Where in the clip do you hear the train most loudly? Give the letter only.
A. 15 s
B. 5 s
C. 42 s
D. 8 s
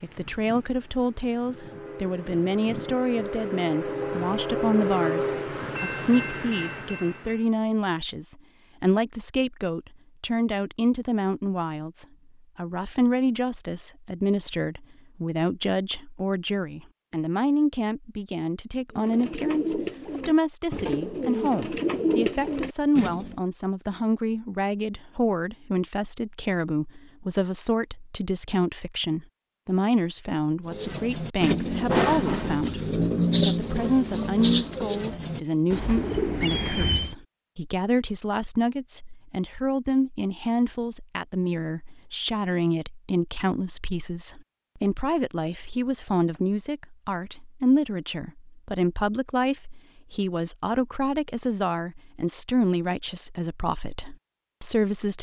B.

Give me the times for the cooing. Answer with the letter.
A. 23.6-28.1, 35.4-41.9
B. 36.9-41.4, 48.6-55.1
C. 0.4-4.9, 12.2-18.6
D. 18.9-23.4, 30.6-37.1
D.